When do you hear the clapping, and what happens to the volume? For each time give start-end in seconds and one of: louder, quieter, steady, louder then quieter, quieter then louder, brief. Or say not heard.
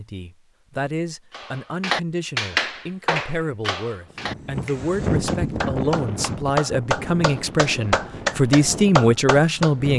1.3-9.7 quieter then louder.